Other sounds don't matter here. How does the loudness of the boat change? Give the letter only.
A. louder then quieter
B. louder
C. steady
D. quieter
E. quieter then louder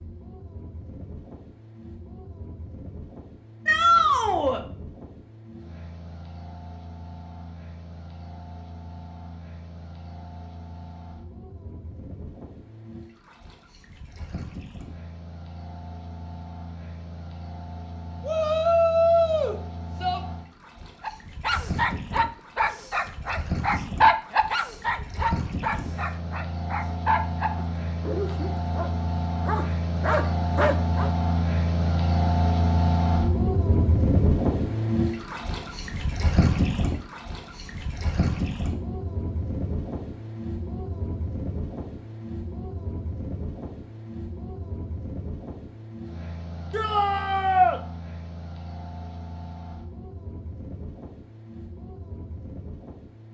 A.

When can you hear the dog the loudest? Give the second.
24 s.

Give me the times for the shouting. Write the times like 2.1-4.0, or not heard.
3.6-4.6, 18.2-20.2, 46.7-47.8.